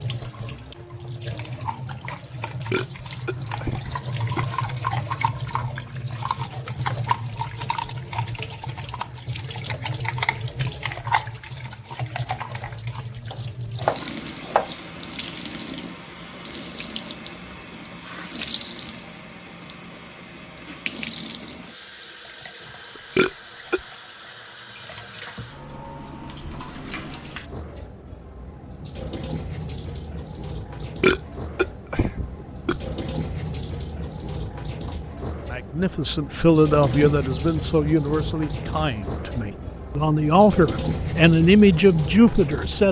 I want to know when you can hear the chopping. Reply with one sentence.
The chopping can be heard from 13.3 to 14.7 s.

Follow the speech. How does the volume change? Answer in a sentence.
The loudness of the speech goes down, then up.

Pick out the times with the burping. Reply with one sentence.
You can hear the burping from 2.5 to 4.5 s, from 22.9 to 23.8 s and from 30.8 to 32.8 s.